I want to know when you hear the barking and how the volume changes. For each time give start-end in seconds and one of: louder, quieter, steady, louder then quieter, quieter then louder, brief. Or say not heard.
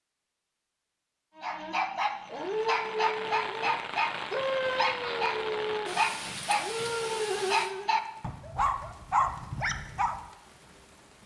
1.4-10.2 steady.